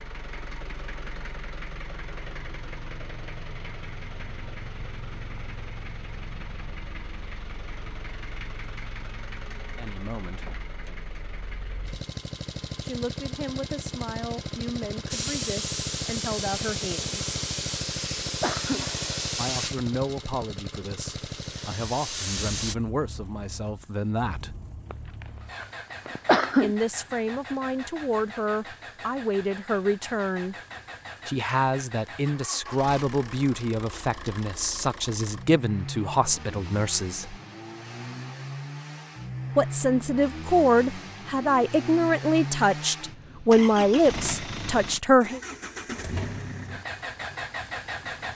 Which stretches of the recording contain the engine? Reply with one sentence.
You can hear the engine from 0.0 to 48.3 s.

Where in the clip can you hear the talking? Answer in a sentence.
The talking can be heard from 9.8 to 10.5 s, from 12.8 to 17.1 s, from 19.4 to 24.6 s, from 26.6 to 30.6 s, from 31.2 to 37.4 s and from 39.5 to 45.4 s.